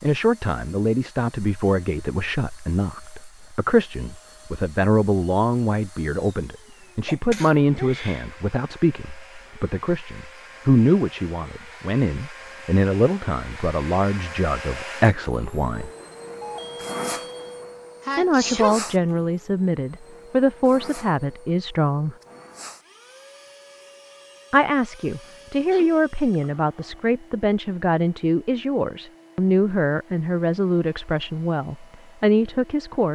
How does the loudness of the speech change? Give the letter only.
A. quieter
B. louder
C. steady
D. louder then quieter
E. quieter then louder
C.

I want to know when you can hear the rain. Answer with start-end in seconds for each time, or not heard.
not heard.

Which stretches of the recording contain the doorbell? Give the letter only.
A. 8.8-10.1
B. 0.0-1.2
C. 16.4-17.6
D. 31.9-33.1
C.